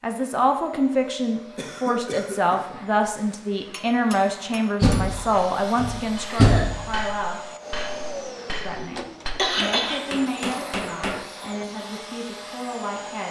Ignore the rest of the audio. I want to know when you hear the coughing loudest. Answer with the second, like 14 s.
10 s.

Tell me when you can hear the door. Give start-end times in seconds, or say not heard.
4.8-7.0.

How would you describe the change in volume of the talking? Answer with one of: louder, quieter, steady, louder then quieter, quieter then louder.
quieter.